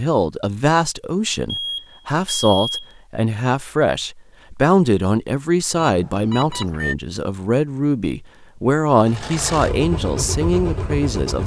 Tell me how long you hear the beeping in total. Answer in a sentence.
You can hear the beeping for 3 seconds altogether.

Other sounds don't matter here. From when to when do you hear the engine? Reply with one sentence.
You can hear the engine from 9.0 to 11.4 s.